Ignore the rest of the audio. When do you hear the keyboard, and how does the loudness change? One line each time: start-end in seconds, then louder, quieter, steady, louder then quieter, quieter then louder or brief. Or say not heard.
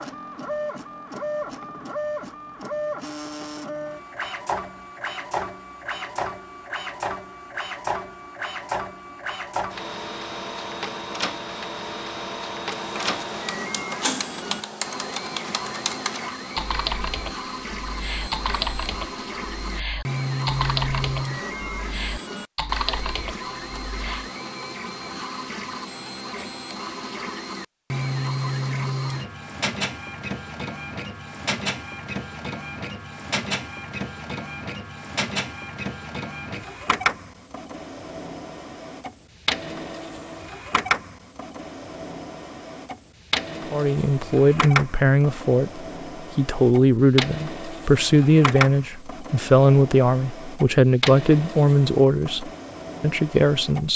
12.7-24.3 steady.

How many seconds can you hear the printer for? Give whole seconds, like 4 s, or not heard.
54 s.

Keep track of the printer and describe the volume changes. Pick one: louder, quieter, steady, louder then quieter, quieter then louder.
steady.